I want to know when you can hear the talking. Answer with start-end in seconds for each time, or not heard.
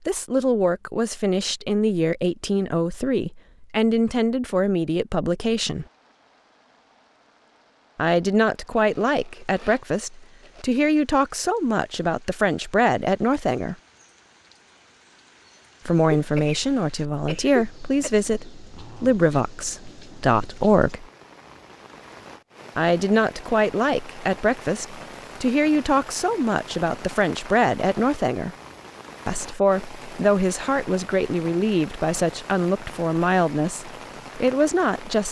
0.1-5.8, 8.0-13.8, 15.8-21.1, 22.8-28.5, 29.2-35.2.